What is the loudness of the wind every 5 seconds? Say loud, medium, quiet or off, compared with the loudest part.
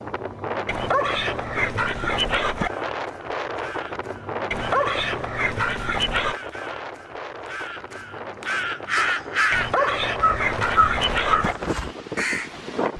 loud, medium, loud.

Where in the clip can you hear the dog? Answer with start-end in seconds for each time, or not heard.
0.7-2.7, 4.5-6.3, 9.5-11.6.